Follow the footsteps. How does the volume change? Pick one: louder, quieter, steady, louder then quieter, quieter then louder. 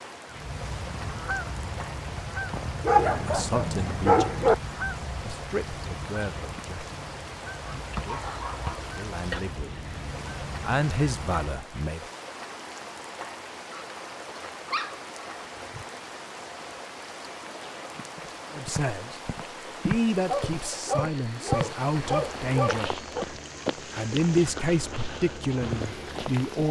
quieter.